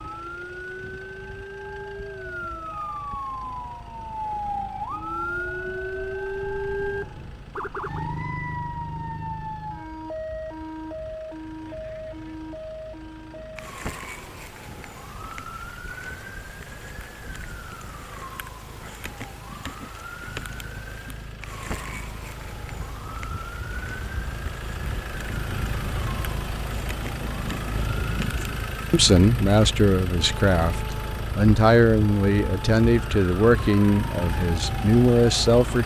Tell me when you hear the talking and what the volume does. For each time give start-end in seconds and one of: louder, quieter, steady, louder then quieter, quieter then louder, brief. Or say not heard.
28.9-35.8 steady.